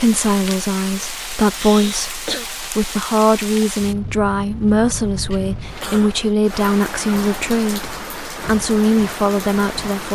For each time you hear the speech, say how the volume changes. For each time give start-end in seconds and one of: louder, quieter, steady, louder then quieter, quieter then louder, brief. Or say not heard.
0.0-10.0 steady.